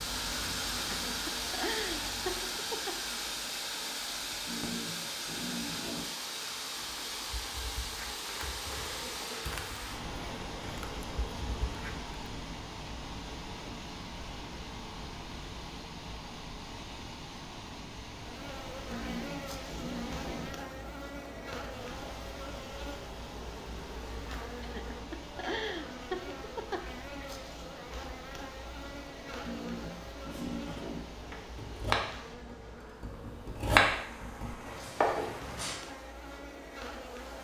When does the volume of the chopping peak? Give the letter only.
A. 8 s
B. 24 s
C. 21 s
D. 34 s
D.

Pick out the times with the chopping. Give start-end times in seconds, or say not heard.
30.3-35.8.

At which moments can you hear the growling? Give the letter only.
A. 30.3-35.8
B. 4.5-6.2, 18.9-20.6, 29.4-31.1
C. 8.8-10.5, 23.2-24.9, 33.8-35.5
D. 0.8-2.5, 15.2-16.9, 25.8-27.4
B.